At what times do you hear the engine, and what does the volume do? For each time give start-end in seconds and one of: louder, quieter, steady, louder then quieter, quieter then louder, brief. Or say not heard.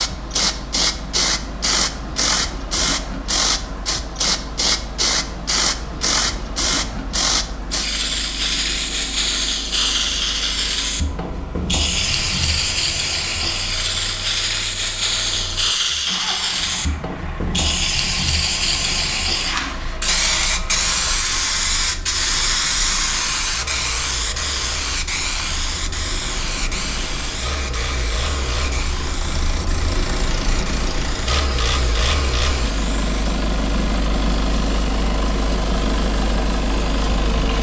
0.0-37.5 louder.